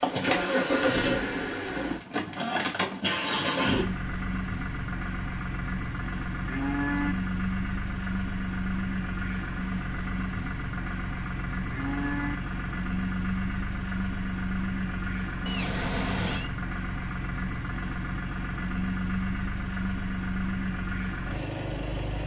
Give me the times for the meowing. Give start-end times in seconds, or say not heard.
15.4-16.5.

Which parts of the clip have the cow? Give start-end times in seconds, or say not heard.
6.5-7.2, 11.7-12.4.